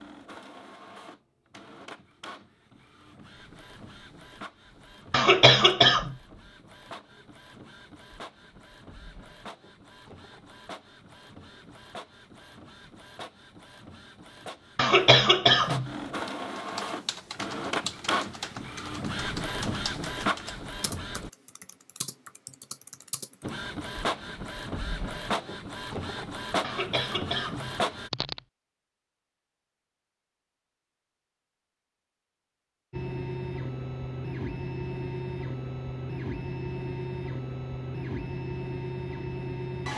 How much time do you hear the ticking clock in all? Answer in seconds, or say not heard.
not heard.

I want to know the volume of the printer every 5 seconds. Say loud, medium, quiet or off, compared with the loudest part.
quiet, quiet, quiet, loud, loud, loud, loud, loud.